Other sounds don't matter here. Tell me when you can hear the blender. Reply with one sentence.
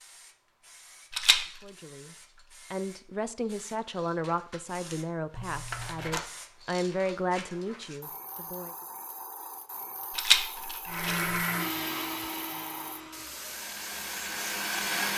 You can hear the blender from 10.8 to 15.1 s.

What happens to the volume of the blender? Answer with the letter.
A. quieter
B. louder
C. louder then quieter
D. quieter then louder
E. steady
D.